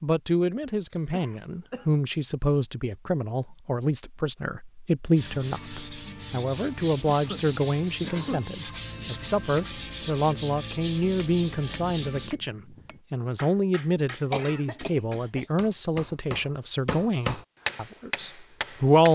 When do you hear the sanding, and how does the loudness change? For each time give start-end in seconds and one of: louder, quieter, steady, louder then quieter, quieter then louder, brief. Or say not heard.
5.2-12.3 steady.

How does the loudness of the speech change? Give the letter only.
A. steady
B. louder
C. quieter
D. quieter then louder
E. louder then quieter
A.